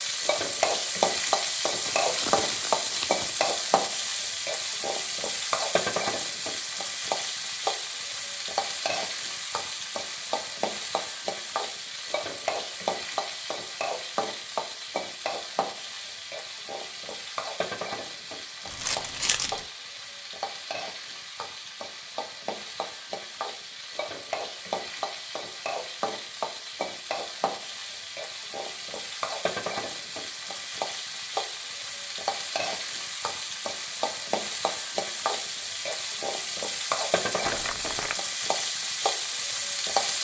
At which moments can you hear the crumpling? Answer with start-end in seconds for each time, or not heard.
1.8-3.5, 18.6-19.6, 37.4-38.2.